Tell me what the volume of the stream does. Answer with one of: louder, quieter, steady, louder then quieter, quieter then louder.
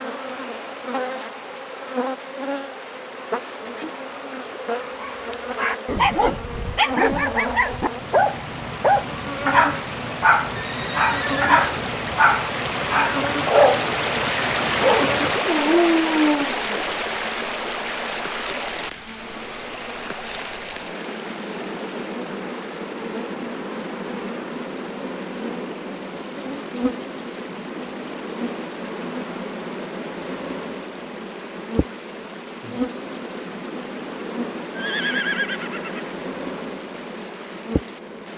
louder then quieter.